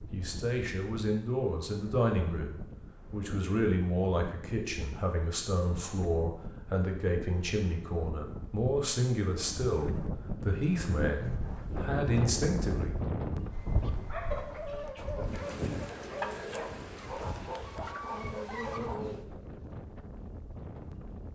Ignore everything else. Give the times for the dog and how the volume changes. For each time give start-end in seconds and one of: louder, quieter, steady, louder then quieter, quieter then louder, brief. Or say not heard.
13.5-19.1 steady.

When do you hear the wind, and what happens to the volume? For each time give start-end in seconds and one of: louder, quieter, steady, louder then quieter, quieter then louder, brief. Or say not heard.
0.0-21.3 louder then quieter.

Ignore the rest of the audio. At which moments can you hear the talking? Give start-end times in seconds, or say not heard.
0.0-12.9.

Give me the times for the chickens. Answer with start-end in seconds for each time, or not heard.
13.8-19.3.